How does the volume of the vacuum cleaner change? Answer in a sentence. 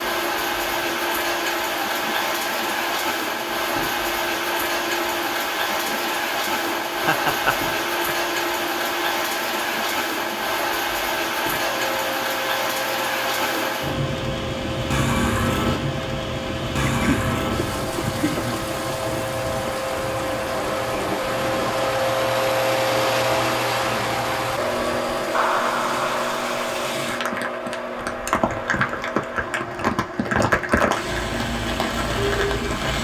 The loudness of the vacuum cleaner goes up, then down.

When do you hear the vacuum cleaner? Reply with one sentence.
You can hear the vacuum cleaner from 0.0 to 32.9 s.